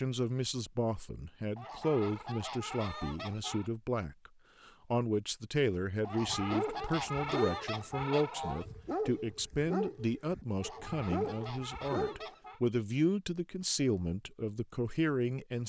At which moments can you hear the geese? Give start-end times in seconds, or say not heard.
1.6-3.7, 6.0-8.7, 10.6-12.6.